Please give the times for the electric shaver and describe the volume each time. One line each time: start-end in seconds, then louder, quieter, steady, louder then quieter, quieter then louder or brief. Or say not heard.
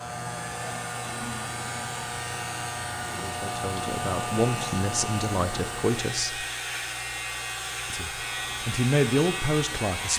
0.0-10.1 steady.